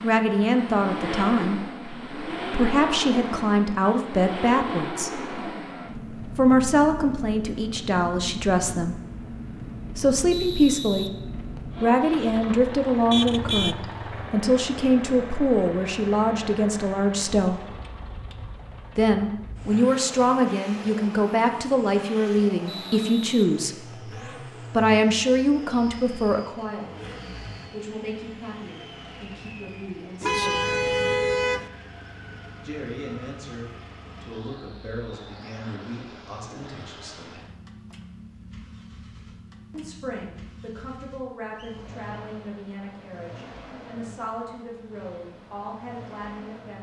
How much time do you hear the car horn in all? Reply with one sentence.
The car horn can be heard for 3 seconds in total.